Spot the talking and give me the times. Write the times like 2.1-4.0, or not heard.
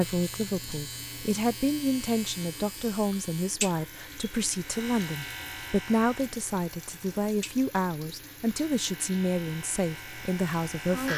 0.0-11.1.